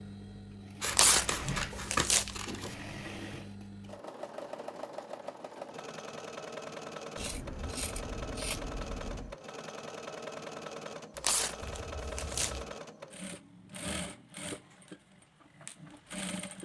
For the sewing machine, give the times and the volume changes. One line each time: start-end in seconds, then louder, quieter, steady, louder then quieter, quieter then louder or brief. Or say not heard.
0.0-16.5 steady.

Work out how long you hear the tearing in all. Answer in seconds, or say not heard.
3 s.